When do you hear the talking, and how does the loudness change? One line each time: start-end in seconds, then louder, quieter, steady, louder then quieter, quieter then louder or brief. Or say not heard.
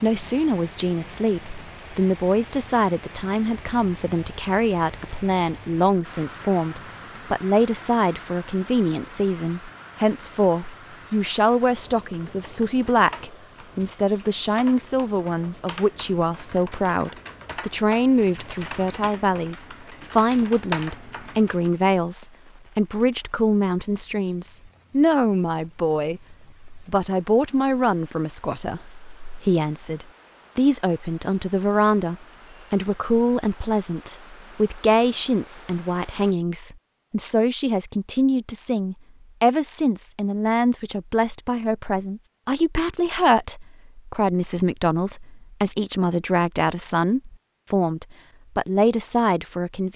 0.0-49.9 steady.